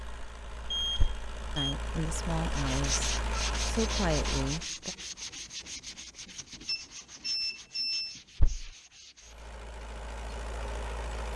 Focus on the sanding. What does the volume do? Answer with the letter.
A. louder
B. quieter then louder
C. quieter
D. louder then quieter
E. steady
C.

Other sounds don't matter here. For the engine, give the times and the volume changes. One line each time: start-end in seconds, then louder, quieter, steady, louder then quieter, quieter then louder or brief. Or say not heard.
0.0-4.7 louder
9.2-11.3 brief.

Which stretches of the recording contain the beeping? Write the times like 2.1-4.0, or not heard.
0.7-1.8, 6.7-8.2.